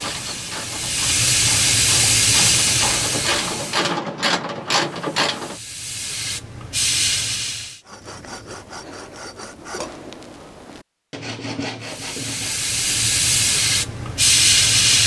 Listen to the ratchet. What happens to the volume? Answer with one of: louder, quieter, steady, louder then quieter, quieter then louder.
louder.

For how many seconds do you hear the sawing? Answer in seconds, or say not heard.
5 s.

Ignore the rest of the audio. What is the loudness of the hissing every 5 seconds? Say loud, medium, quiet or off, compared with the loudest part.
loud, medium, loud.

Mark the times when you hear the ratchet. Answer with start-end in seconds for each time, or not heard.
0.0-5.6.